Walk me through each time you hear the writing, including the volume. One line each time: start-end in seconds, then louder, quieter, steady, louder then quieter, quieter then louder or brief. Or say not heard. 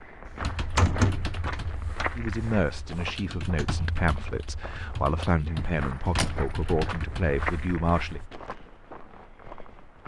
not heard.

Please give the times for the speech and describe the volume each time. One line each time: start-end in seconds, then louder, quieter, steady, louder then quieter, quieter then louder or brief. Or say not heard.
2.1-8.2 steady.